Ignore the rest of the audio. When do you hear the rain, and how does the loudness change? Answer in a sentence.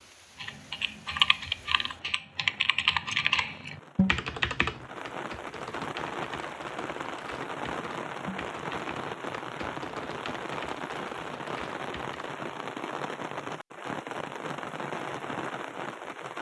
You can hear the rain from 0.0 to 16.3 s, getting louder.